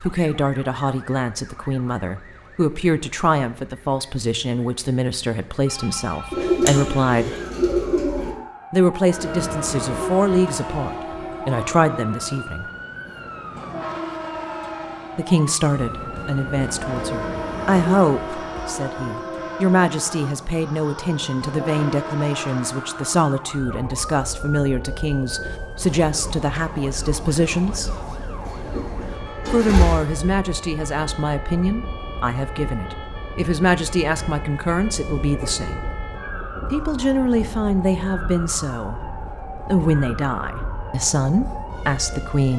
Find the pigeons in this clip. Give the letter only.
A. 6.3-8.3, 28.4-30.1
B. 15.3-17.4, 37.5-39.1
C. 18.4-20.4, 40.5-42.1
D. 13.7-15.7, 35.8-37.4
A.